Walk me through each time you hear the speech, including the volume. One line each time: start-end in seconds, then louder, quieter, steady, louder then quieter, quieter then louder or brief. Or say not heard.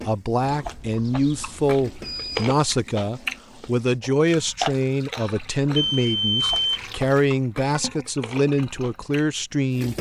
0.1-9.9 steady.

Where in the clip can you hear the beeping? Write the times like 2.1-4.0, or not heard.
0.6-2.5, 5.8-7.1.